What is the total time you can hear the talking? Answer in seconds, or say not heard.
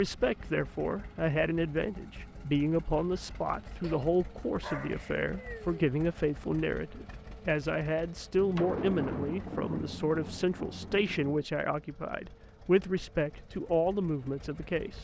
15 s.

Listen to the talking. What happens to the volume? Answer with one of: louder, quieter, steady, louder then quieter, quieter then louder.
steady.